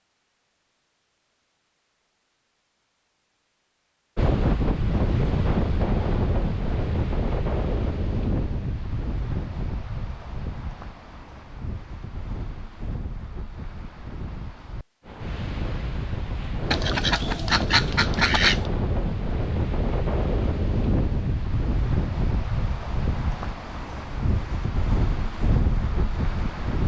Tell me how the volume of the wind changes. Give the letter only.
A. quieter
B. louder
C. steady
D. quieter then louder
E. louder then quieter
D.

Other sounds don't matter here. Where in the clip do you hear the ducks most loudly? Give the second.
18 s.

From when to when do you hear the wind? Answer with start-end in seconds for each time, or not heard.
4.2-26.8.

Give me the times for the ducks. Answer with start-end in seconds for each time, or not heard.
16.7-18.7.